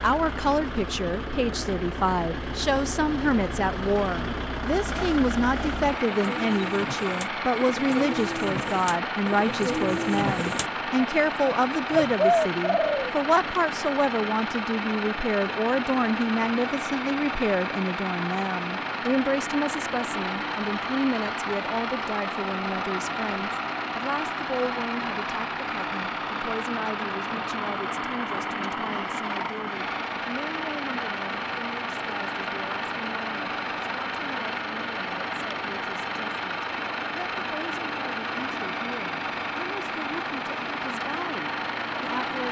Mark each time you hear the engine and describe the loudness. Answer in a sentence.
The engine can be heard from 0.0 to 42.4 s, at a steady volume.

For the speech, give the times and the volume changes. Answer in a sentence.
You can hear the speech from 0.0 to 42.4 s, getting quieter.